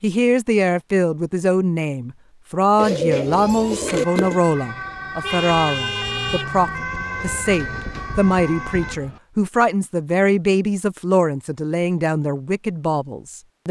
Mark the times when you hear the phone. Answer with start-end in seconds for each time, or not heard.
not heard.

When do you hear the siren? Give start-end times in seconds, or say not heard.
3.2-9.0.